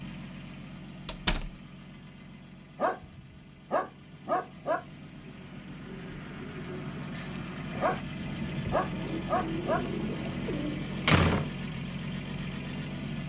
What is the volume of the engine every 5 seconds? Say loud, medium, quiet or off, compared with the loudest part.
medium, loud, loud.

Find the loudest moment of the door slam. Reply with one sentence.
The volume of the door slam peaks at 11 seconds.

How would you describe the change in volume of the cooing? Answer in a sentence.
The volume of the cooing goes up.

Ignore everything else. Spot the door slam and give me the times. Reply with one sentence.
The door slam can be heard from 1.1 to 1.5 s and from 10.4 to 11.5 s.